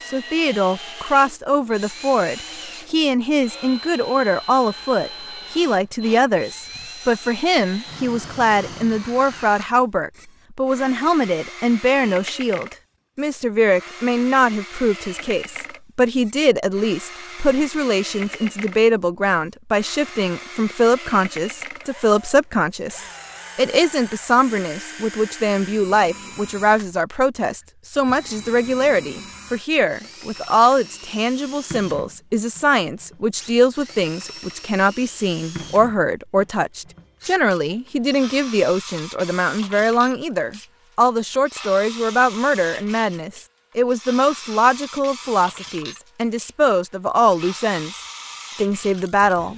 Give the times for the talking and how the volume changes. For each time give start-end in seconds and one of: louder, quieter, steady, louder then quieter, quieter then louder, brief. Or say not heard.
0.1-49.5 steady.